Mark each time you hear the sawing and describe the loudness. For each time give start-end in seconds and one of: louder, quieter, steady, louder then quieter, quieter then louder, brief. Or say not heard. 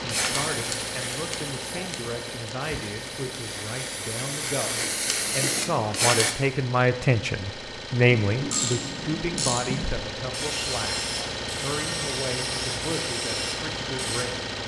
not heard.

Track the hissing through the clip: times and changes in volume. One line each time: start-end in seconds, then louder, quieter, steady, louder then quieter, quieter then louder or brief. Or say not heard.
0.0-6.3 quieter then louder.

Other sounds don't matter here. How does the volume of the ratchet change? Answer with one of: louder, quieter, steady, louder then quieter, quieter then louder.
steady.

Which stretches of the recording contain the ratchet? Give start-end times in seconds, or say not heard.
8.2-14.2.